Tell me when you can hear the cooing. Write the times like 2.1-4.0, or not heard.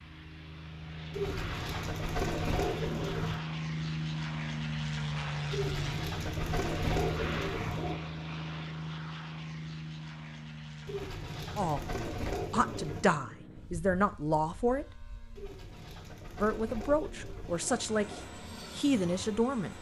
1.1-3.4, 5.5-8.0, 10.8-13.1, 15.3-18.3.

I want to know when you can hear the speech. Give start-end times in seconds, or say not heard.
11.6-15.1, 16.4-19.7.